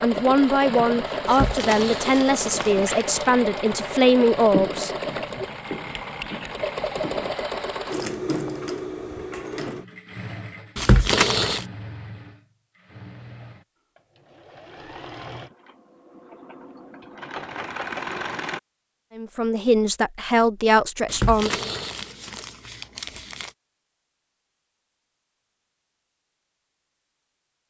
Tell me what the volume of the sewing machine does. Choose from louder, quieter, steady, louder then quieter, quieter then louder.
quieter then louder.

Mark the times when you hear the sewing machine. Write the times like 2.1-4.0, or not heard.
0.0-18.6.